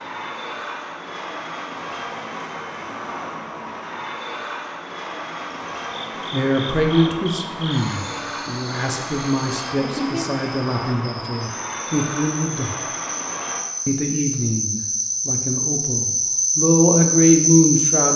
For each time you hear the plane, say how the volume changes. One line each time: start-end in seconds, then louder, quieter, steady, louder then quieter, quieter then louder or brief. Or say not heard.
0.0-13.7 steady.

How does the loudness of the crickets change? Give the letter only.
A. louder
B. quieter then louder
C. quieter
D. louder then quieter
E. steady
A.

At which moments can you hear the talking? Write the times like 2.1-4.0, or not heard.
6.3-12.8, 13.8-18.1.